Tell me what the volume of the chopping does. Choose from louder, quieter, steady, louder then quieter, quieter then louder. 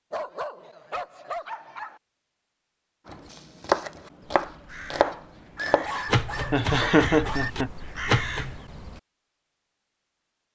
quieter then louder.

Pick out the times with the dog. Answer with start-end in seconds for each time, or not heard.
0.1-2.0, 5.5-7.5.